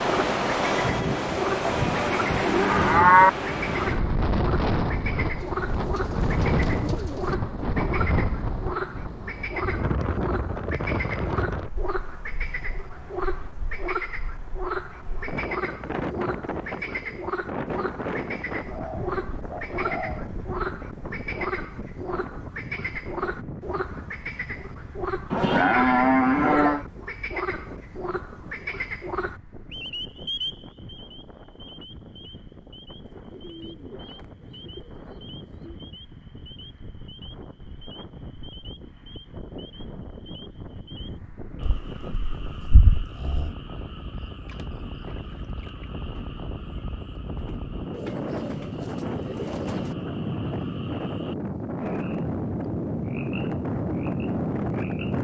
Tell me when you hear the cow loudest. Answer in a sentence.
The volume of the cow peaks at 3 seconds.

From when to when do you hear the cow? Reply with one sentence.
You can hear the cow from 1.8 to 3.3 s, from 25.3 to 26.9 s and from 41.6 to 43.5 s.